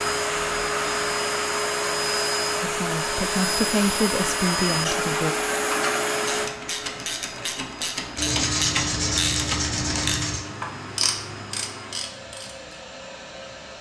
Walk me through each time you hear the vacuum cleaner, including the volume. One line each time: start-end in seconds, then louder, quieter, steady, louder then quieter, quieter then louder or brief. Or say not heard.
0.0-13.7 quieter.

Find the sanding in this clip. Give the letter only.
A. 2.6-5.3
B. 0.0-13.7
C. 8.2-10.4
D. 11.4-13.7
C.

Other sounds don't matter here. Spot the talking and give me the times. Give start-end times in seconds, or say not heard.
2.6-5.3.